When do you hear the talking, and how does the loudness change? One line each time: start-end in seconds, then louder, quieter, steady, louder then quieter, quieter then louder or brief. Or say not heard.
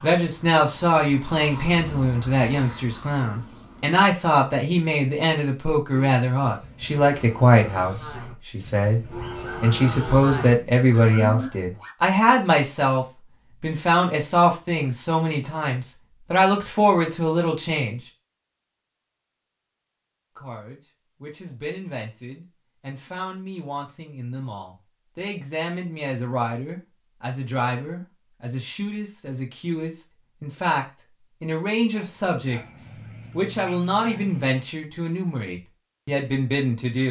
0.0-18.0 steady
20.4-37.0 louder.